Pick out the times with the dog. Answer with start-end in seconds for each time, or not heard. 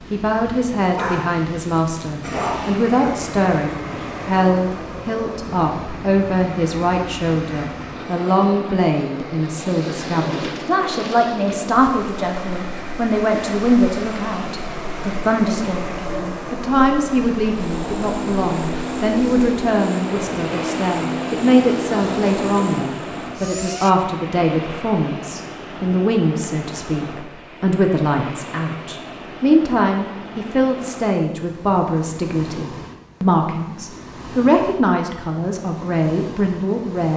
0.8-2.8.